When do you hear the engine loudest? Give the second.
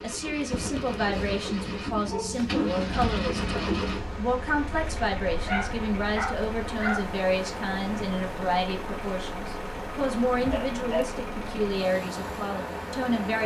3 s.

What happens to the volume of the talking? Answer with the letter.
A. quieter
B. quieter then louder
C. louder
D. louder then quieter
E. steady
E.